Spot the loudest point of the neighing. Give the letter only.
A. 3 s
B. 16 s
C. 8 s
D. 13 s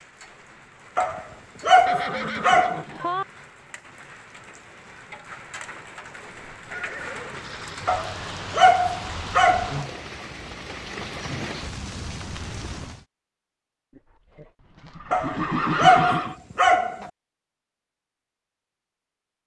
B.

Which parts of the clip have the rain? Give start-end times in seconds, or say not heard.
0.0-13.1.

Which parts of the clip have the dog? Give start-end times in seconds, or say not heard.
0.9-2.9, 7.8-9.8, 15.1-17.1.